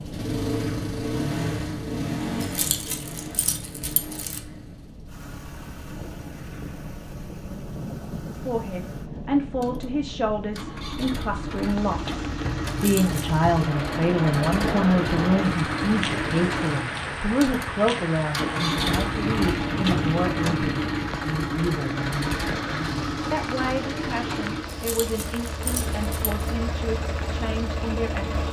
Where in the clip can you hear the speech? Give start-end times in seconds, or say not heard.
8.4-28.4.